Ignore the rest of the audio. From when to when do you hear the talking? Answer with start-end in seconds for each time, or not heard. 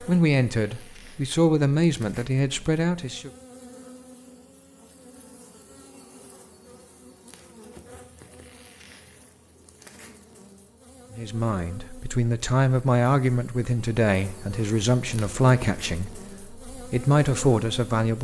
0.0-3.3, 11.1-18.1.